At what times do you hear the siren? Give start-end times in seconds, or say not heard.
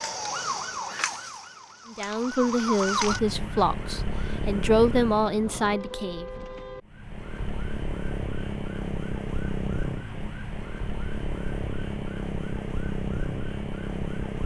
0.0-5.5, 6.8-14.4.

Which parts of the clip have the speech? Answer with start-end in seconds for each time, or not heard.
1.9-6.2.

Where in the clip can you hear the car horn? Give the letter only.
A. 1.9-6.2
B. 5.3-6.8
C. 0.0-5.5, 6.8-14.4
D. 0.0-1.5
B.